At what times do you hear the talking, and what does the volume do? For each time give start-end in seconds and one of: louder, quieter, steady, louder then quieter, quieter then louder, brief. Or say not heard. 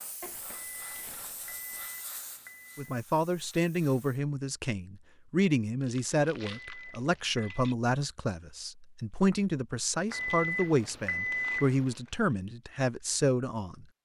2.8-13.8 steady.